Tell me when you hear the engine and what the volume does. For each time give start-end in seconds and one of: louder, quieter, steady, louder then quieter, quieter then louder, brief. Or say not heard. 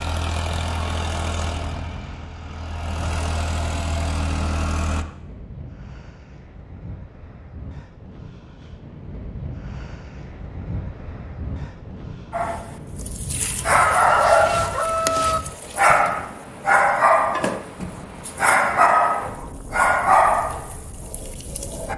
0.0-5.0 quieter then louder.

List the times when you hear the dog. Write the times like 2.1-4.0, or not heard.
12.3-21.9.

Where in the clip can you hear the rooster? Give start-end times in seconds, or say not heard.
13.7-15.4.